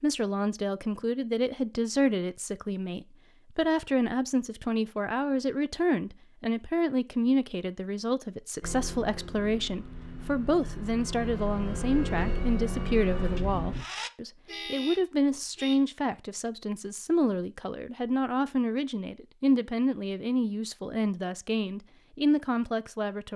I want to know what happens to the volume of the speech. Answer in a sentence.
The loudness of the speech stays about the same.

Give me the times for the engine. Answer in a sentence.
The engine can be heard from 8.6 to 14.1 s.